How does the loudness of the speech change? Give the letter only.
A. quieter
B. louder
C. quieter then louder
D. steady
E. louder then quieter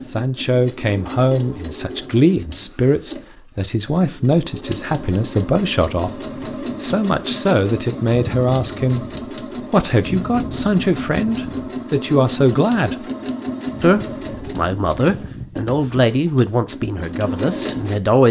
D.